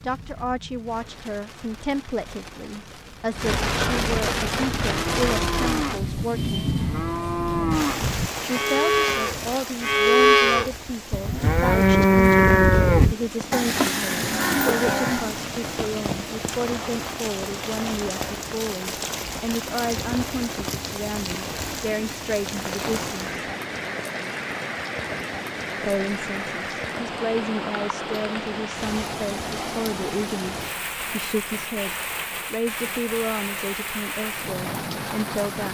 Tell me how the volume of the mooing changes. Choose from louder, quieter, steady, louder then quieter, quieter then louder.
louder then quieter.